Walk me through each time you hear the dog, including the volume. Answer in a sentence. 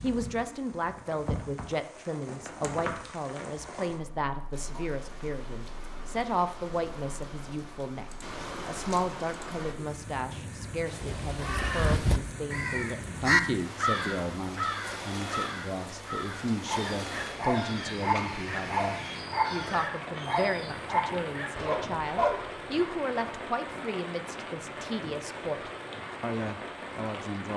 You can hear the dog from 16.6 to 22.8 s, at a steady volume.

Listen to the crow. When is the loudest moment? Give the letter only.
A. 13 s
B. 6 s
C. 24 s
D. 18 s
A.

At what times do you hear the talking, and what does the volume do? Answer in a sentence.
The talking can be heard from 0.0 to 27.5 s, at a steady volume.